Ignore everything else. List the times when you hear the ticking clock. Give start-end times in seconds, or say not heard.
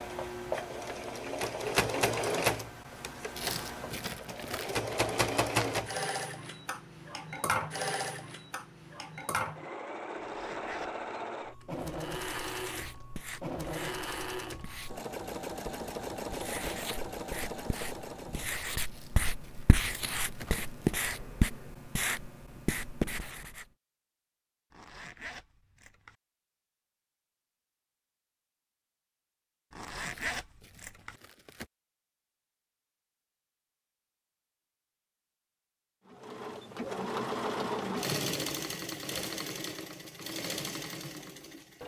not heard.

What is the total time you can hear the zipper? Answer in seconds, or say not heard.
4 s.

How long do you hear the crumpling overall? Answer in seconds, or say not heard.
5 s.